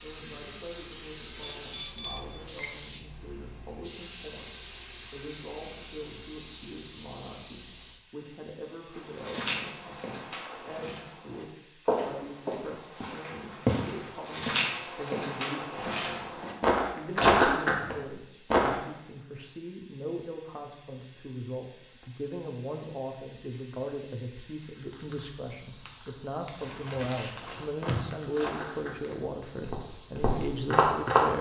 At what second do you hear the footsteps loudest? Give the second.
17 s.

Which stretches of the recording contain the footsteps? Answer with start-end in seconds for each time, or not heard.
8.9-18.8, 26.6-31.2.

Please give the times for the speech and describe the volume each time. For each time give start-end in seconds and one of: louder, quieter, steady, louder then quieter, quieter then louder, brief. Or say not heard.
0.0-31.3 louder.